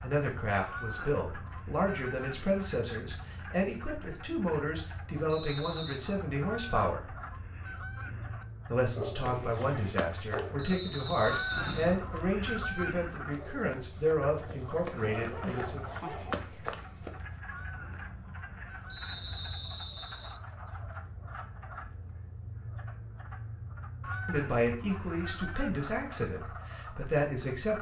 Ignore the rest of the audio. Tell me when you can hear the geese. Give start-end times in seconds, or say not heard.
0.7-2.6, 6.4-8.4, 11.2-13.2, 17.4-19.5, 24.0-25.9.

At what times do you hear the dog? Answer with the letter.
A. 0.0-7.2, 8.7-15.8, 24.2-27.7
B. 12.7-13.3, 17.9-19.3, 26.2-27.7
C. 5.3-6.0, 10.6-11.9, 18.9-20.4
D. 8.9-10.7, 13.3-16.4
D.